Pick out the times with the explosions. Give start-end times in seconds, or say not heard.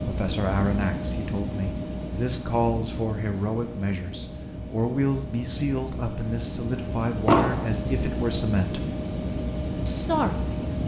7.2-7.7.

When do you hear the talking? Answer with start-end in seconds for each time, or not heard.
0.0-8.9, 9.8-10.7.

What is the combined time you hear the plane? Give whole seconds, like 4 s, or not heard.
11 s.